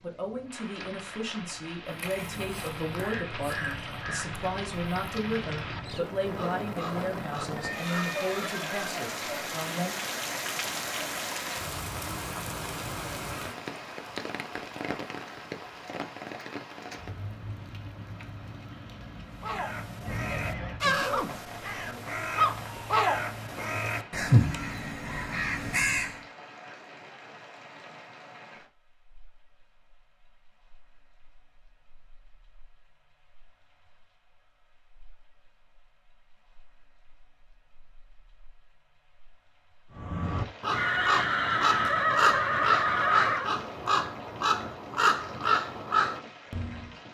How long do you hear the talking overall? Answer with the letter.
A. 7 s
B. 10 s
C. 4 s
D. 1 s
B.